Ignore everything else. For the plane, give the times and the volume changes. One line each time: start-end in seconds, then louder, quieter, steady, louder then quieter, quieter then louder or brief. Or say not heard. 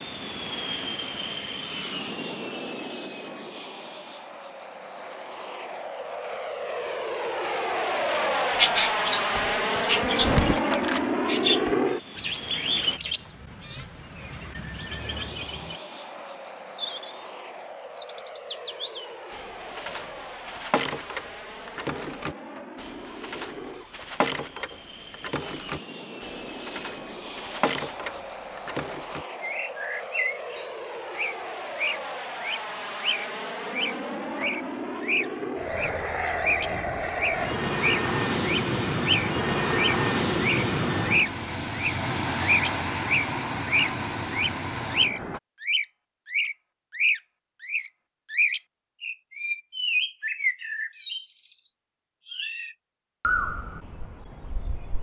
0.0-13.0 quieter then louder
14.9-45.4 louder.